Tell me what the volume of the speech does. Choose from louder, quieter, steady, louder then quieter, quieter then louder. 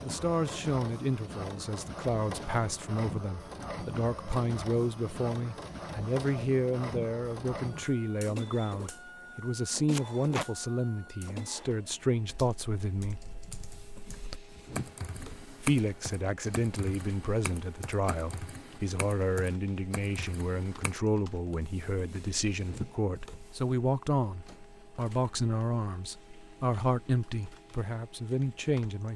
steady.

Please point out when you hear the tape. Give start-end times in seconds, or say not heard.
9.9-10.4.